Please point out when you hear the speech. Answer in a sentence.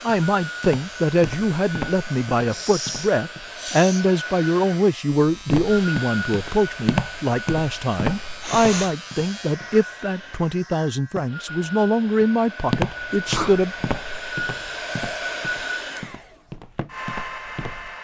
You can hear the speech from 0.0 to 13.8 s.